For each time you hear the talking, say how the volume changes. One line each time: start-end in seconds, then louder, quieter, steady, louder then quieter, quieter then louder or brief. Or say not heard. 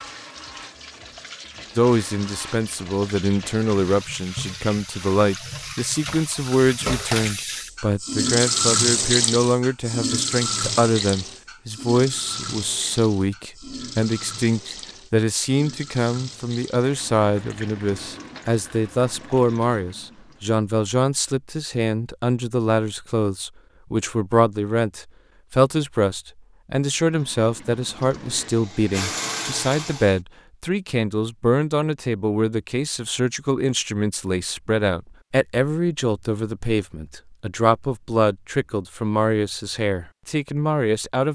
1.8-41.3 steady.